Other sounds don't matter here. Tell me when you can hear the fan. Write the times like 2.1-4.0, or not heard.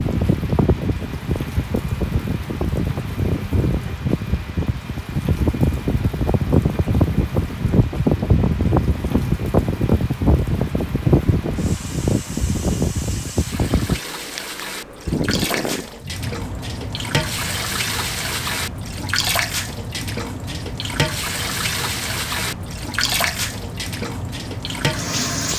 0.0-25.5.